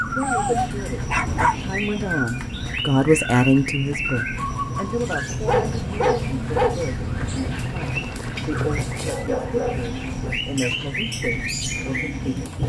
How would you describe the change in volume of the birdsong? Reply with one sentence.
The loudness of the birdsong stays about the same.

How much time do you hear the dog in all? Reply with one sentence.
The dog can be heard for 4 seconds in total.